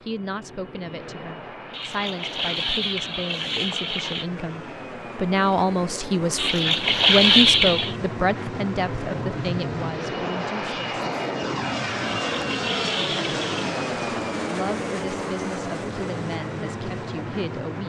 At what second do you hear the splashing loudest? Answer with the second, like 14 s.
7 s.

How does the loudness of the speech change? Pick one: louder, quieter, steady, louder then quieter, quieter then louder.
louder then quieter.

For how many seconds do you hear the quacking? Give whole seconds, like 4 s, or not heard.
not heard.